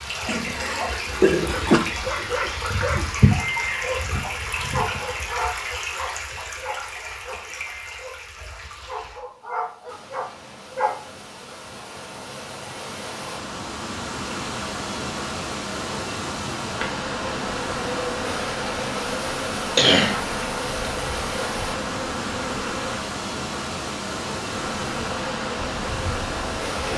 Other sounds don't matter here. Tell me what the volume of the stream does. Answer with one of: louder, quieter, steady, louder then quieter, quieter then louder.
quieter then louder.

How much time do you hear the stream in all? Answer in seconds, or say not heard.
27 s.